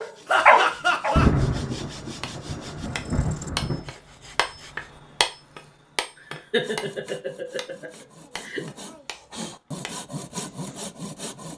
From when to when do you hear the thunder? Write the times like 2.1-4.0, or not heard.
1.1-3.9.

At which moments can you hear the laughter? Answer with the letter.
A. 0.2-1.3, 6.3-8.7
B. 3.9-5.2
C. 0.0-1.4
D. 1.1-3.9
A.